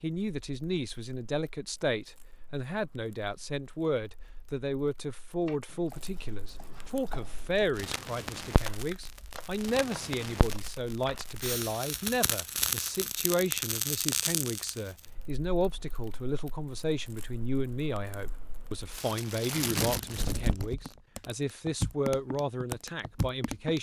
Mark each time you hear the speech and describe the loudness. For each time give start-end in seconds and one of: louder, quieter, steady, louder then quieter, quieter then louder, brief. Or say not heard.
0.0-23.7 steady.